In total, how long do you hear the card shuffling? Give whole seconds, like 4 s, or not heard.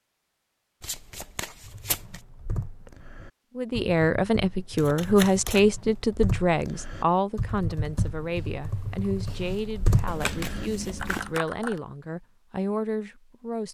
4 s.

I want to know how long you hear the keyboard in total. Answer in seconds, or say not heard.
10 s.